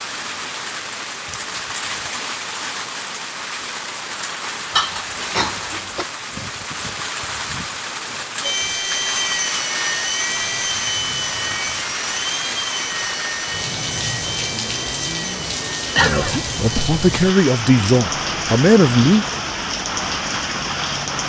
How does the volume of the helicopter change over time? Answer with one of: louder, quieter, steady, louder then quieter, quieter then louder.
quieter.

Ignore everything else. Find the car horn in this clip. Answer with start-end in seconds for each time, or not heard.
not heard.